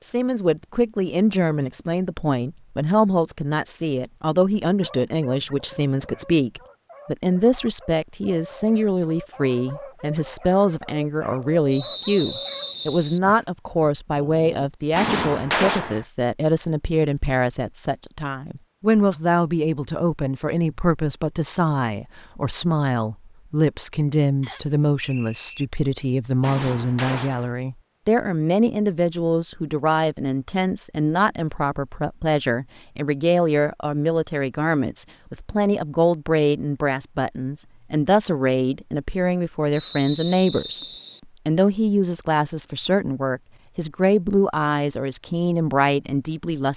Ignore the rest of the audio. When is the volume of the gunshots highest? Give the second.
16 s.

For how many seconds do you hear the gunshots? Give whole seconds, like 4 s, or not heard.
2 s.